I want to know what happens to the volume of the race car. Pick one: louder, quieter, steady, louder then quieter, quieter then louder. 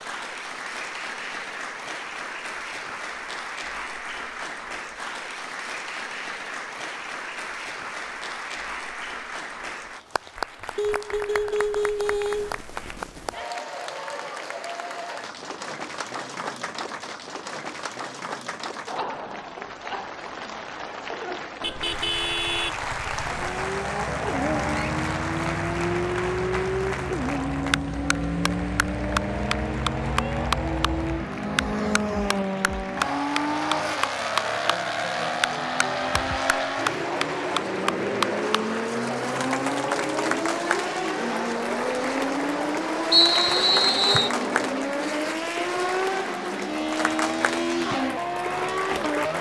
steady.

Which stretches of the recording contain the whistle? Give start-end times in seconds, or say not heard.
43.1-44.3.